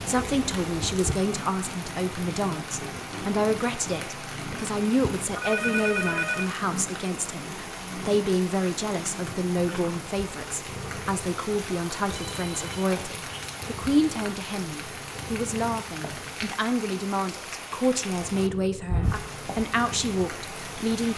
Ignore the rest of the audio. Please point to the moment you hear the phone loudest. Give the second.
6 s.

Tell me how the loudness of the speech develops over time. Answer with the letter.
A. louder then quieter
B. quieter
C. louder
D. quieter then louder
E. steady
E.